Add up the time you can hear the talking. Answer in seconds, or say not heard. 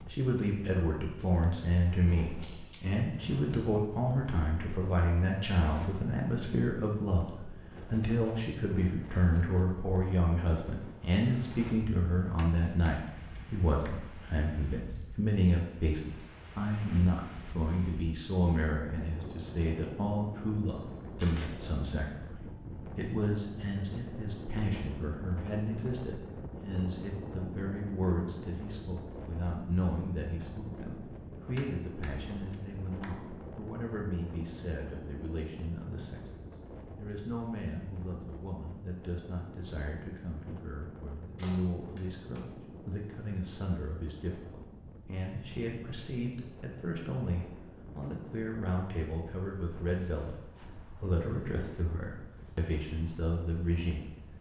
54 s.